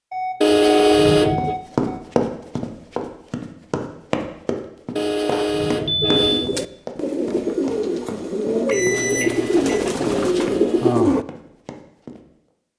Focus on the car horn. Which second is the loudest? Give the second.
1 s.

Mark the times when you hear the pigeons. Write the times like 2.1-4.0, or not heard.
6.0-11.2.